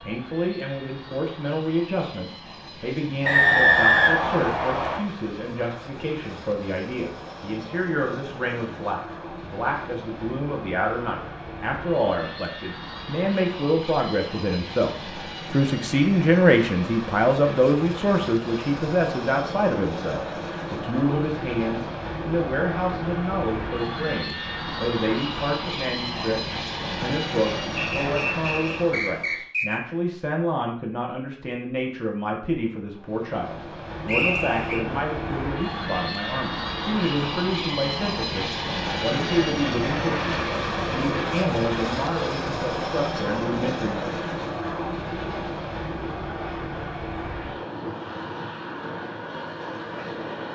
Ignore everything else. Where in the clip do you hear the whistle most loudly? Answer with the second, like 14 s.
4 s.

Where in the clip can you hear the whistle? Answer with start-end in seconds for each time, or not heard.
3.2-5.0, 27.8-29.8, 34.0-34.8.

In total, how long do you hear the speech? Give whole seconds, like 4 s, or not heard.
44 s.